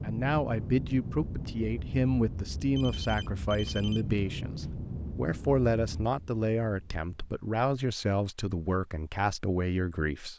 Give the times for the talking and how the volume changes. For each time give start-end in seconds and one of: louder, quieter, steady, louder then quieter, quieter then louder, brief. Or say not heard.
0.0-10.3 steady.